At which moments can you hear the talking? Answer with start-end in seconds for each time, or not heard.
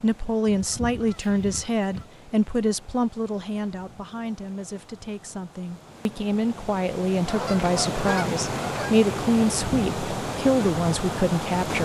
0.0-11.8.